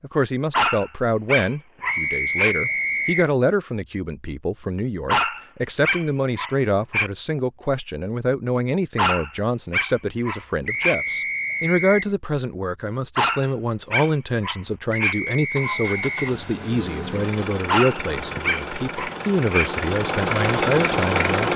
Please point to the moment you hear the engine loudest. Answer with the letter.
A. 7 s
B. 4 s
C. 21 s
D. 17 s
C.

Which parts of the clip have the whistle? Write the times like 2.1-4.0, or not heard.
1.9-3.3, 10.7-12.1, 14.9-16.4.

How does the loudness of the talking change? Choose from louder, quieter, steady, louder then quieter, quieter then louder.
steady.